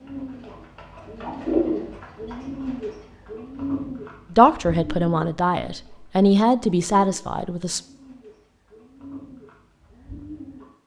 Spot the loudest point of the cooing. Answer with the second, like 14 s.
2 s.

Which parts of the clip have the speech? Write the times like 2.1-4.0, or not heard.
4.3-7.8.